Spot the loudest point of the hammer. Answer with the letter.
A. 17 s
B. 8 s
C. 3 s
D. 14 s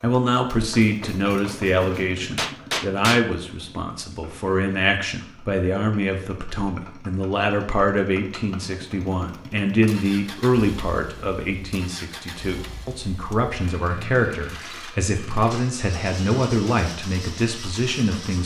C.